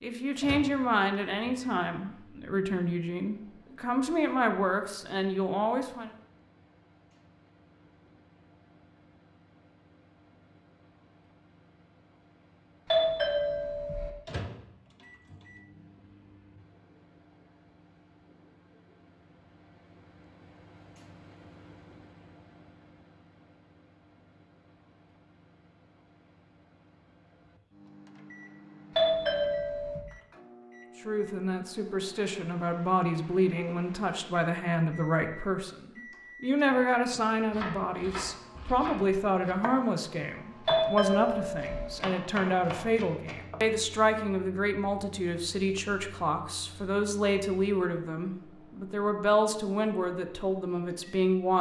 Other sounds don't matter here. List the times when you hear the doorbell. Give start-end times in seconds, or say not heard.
12.9-14.1, 28.9-30.1, 40.6-41.9.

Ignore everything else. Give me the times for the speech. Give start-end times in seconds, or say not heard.
0.0-6.1, 31.0-51.5.